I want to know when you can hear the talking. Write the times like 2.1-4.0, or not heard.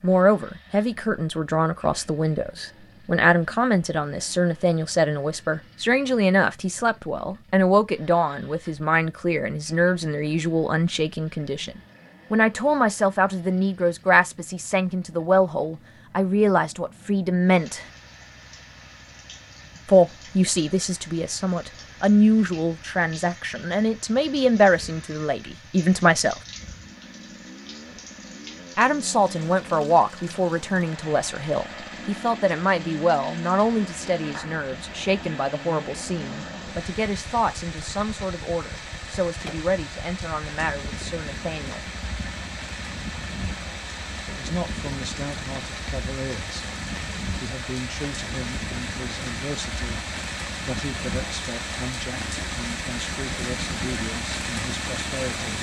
0.0-17.9, 19.9-26.4, 28.8-41.9, 44.2-46.6, 47.4-50.0, 50.6-55.5.